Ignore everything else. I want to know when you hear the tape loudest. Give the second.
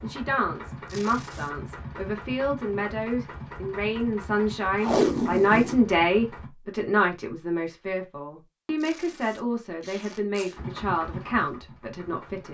5 s.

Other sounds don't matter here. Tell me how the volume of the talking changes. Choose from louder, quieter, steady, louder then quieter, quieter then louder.
louder then quieter.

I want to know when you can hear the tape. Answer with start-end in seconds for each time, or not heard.
0.8-1.5, 4.8-5.8, 8.8-10.6.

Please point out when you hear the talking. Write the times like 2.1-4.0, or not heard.
0.0-12.4.